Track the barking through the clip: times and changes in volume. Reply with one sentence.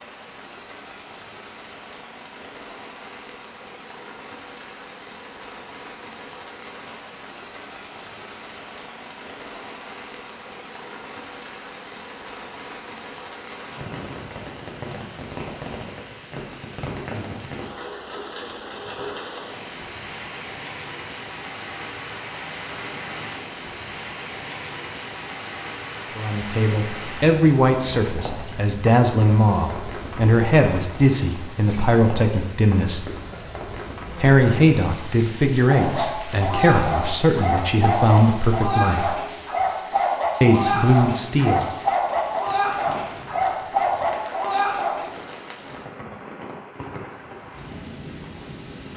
The barking can be heard from 35.6 to 45.0 s, at a steady volume.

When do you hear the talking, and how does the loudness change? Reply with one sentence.
You can hear the talking from 26.1 to 33.0 s, at a steady volume; from 34.1 to 39.2 s, at a steady volume; and briefly from 40.4 to 41.6 s.